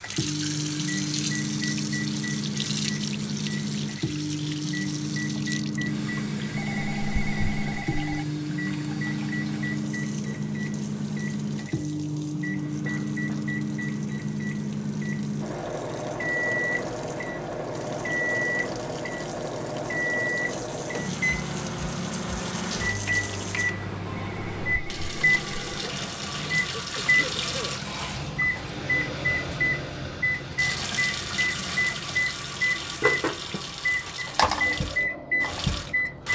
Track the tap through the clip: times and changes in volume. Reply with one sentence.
The tap can be heard from 0.0 to 36.3 s, getting quieter then louder.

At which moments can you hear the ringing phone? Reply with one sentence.
The ringing phone can be heard from 6.5 to 8.2 s and from 24.2 to 25.9 s.